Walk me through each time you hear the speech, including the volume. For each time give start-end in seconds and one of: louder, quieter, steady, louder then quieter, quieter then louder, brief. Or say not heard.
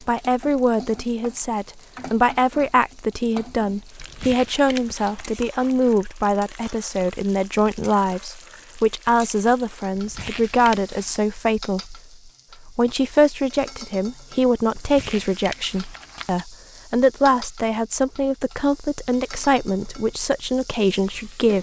0.1-12.0 steady
12.7-21.5 steady.